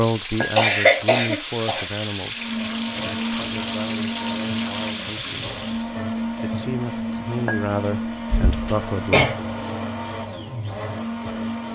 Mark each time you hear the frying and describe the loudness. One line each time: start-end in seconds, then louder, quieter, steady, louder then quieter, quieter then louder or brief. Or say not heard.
0.0-6.0 steady.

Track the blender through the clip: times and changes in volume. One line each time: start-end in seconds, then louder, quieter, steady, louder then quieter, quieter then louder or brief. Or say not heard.
2.3-11.7 steady.